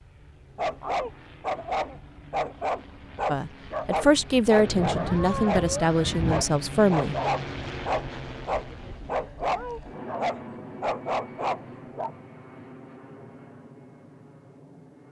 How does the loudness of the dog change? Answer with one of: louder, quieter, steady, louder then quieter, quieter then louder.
steady.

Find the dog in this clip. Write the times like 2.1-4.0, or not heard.
0.6-12.1.